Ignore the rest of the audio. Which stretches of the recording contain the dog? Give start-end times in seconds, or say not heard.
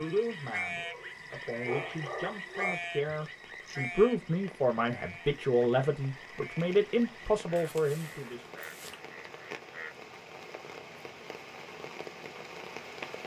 0.8-2.8, 7.5-9.0.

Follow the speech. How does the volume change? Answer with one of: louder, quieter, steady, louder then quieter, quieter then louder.
louder.